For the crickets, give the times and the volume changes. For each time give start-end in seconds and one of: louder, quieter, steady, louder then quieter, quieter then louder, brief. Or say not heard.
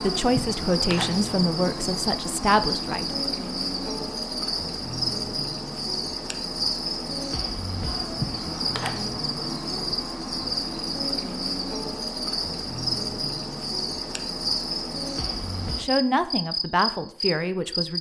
0.0-17.9 steady.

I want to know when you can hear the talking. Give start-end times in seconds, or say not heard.
0.0-3.2, 15.8-17.9.